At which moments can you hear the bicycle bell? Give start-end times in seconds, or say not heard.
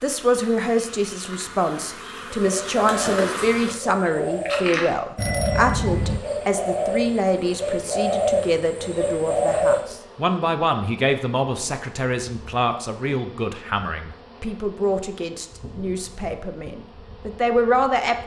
5.2-6.2.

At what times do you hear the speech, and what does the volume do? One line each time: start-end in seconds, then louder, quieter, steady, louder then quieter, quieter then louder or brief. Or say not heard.
0.0-18.1 steady.